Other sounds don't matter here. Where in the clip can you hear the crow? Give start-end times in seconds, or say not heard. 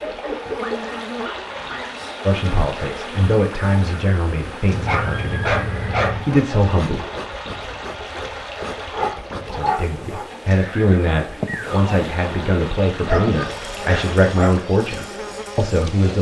not heard.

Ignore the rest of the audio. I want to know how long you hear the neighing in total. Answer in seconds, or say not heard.
3 s.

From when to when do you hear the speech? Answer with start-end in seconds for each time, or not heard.
2.2-7.0, 9.4-16.1.